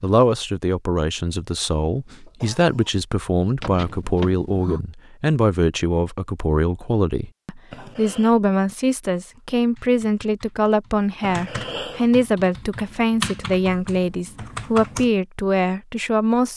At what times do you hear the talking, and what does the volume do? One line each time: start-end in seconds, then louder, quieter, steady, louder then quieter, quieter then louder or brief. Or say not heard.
0.0-16.5 steady.